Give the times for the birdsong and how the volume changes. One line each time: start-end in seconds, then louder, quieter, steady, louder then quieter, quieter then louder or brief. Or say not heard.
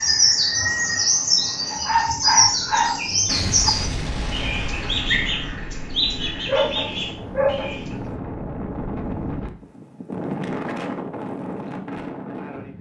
0.0-8.0 quieter.